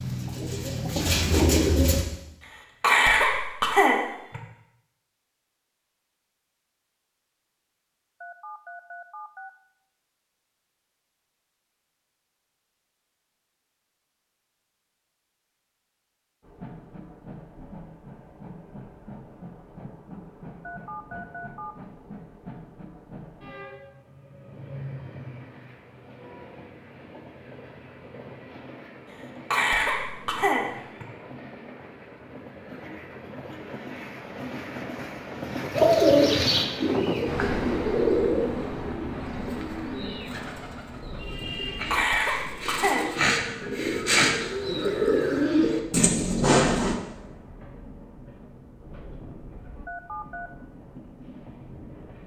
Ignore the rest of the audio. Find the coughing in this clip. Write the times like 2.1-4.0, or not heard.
2.8-4.4, 29.5-31.1, 41.9-43.5.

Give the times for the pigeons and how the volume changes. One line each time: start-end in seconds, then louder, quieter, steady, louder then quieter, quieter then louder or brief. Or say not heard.
0.0-2.0 brief
35.8-47.0 quieter then louder.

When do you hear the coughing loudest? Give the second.
3 s.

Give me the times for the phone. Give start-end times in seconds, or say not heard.
8.2-9.5, 20.6-21.8, 49.9-50.5.